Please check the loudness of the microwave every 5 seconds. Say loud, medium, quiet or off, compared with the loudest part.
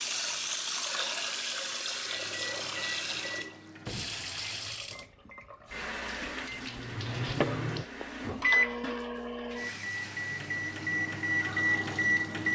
quiet, loud, loud.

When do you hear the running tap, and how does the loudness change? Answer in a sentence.
The running tap can be heard from 0.0 to 12.5 s, getting quieter.